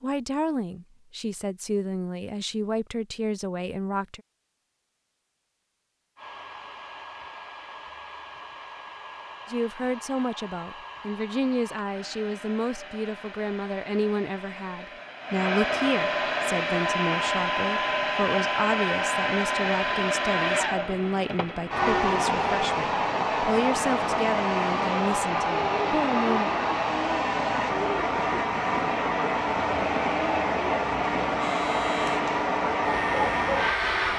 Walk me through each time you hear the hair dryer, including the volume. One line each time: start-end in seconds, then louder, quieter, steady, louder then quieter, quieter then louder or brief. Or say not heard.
6.2-34.1 louder.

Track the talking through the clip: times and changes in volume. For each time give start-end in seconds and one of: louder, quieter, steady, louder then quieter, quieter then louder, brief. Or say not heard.
0.0-4.2 steady
9.4-26.6 steady.